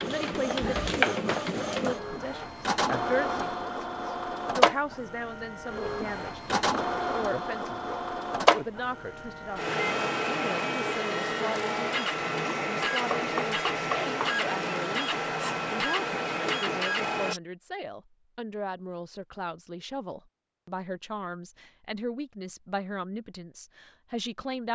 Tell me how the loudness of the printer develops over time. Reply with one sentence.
The loudness of the printer stays about the same.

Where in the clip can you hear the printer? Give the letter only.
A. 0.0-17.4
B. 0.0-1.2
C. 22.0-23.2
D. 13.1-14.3
A.